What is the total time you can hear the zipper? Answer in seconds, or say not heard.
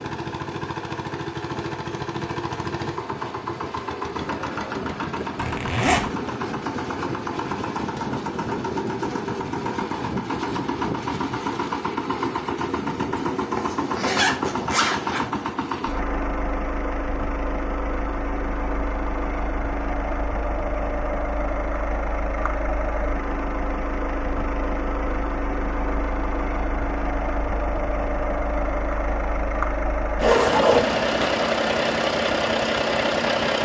4 s.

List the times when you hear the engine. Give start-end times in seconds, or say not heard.
0.0-33.5.